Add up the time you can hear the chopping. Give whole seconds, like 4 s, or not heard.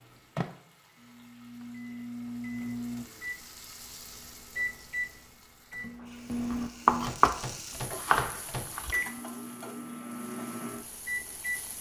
2 s.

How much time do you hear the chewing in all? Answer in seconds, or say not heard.
not heard.